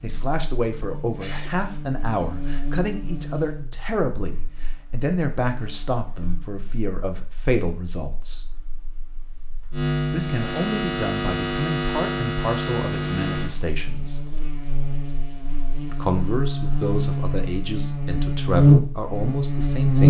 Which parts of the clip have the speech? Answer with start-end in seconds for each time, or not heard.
0.0-8.6, 10.1-14.2, 15.9-20.0.